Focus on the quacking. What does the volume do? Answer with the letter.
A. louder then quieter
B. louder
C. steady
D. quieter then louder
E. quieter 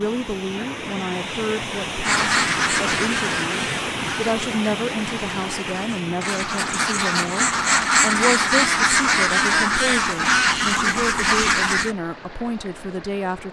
D.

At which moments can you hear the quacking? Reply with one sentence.
The quacking can be heard from 2.0 to 11.9 s.